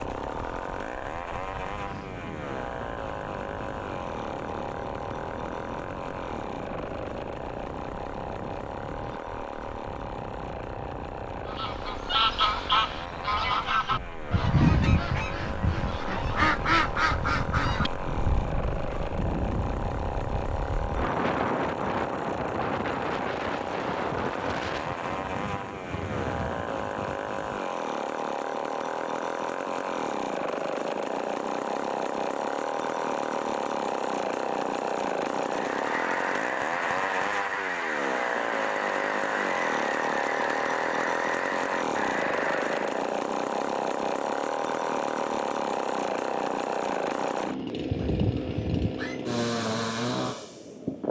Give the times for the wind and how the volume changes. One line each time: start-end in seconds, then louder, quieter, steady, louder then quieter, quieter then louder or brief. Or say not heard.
0.0-27.6 louder.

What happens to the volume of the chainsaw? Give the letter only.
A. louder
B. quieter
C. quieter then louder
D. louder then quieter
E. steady
A.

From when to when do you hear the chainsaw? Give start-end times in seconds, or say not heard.
0.0-51.0.